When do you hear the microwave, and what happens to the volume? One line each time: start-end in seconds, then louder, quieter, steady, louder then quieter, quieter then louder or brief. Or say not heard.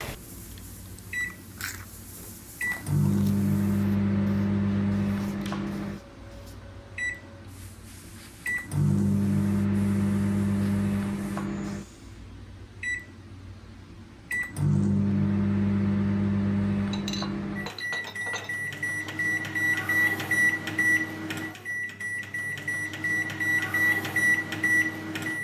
0.0-25.3 steady.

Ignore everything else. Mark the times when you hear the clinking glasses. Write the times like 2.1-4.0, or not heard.
16.9-19.1.